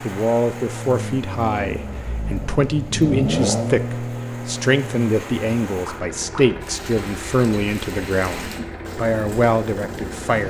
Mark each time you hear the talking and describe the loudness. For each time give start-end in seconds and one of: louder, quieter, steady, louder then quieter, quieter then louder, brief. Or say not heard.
0.0-10.4 steady.